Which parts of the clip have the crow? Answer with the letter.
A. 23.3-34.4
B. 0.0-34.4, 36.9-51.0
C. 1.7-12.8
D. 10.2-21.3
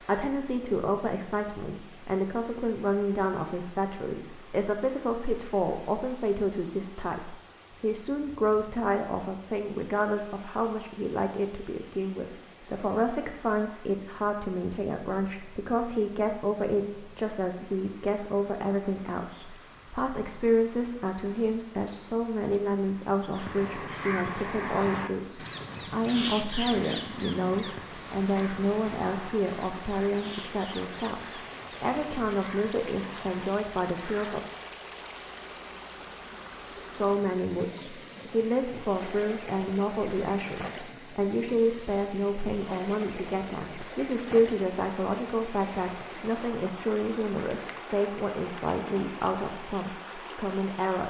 A.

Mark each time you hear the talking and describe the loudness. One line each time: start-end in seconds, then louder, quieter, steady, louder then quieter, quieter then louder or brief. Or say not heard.
0.0-34.4 steady
36.9-51.0 steady.